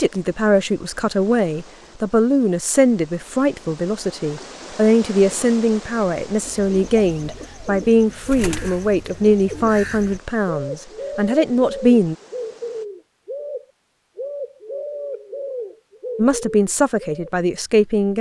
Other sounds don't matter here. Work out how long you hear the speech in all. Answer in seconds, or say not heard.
14 s.